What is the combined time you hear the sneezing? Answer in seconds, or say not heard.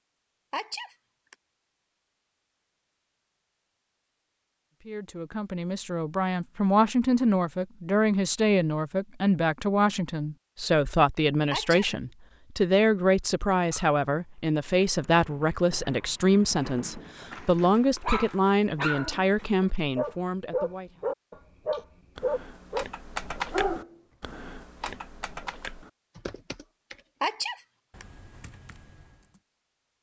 2 s.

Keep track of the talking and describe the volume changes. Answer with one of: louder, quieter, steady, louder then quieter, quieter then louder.
steady.